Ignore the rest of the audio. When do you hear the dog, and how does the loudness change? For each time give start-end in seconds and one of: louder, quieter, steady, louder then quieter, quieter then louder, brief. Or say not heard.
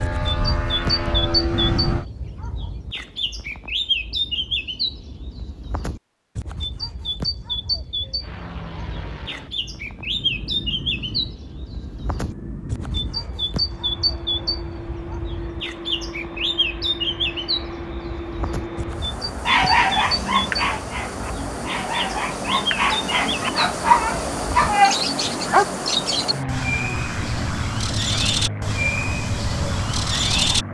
19.4-25.6 quieter then louder.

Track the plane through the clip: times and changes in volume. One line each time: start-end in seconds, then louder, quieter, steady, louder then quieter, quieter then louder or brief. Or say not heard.
0.0-2.0 brief
8.2-30.6 louder.